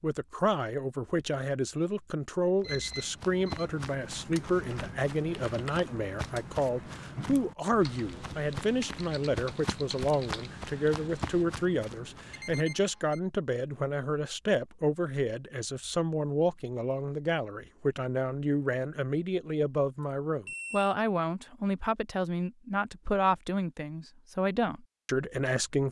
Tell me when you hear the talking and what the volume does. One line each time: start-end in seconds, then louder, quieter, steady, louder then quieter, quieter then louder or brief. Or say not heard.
0.0-25.8 steady.